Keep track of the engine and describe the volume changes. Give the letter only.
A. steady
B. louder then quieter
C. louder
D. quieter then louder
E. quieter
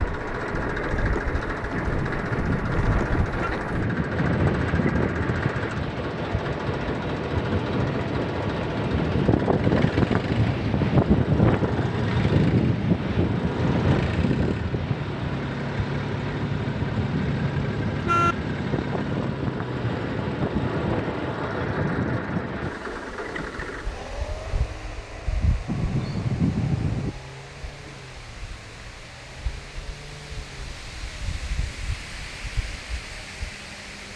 E.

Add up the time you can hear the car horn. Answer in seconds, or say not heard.
5 s.